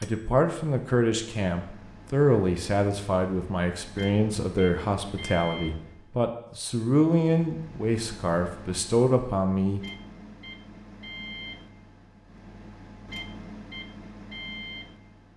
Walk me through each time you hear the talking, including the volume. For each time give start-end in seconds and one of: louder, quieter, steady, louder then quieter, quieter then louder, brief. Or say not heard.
0.0-9.8 steady.